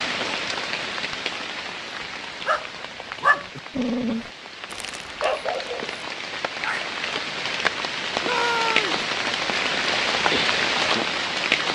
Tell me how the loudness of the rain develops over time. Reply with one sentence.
The volume of the rain goes down, then up.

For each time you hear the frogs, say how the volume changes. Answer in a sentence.
You can't hear the frogs here.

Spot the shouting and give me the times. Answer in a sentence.
The shouting can be heard from 8.2 to 9.0 s.